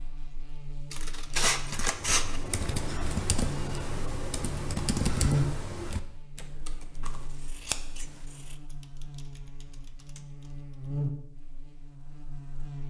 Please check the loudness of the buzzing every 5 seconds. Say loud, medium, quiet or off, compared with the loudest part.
medium, loud, loud.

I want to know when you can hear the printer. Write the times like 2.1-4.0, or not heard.
not heard.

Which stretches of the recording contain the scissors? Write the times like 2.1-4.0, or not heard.
0.9-2.4, 7.0-8.6.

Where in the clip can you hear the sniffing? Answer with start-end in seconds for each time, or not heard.
not heard.